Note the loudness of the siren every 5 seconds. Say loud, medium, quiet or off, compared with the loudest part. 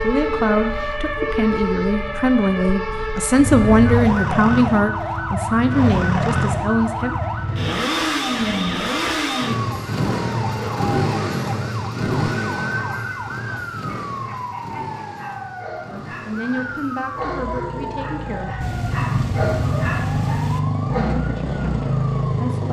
loud, loud, medium, medium, medium.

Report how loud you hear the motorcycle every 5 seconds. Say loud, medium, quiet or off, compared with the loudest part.
loud, loud, loud, medium, loud.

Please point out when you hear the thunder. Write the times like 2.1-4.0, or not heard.
18.6-20.6.